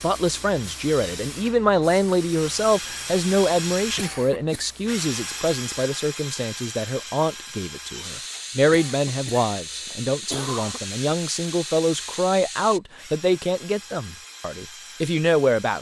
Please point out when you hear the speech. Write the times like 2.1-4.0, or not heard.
0.0-15.7.